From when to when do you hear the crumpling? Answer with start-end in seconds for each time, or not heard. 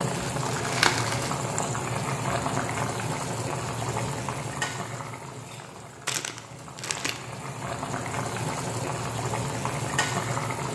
0.1-1.4, 6.0-7.2.